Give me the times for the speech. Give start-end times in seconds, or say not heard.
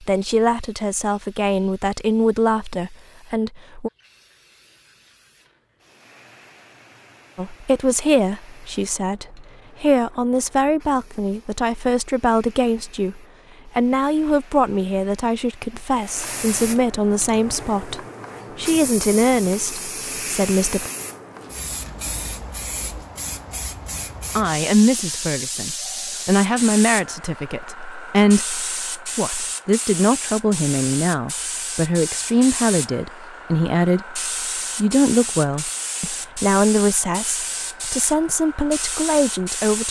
0.0-3.9, 7.3-20.9, 24.4-39.8.